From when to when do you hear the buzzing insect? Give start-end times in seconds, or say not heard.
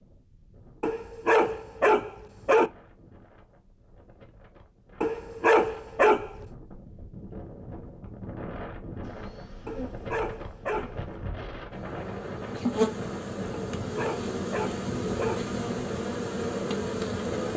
9.0-17.5.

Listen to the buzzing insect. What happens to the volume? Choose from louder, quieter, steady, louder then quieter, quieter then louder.
louder.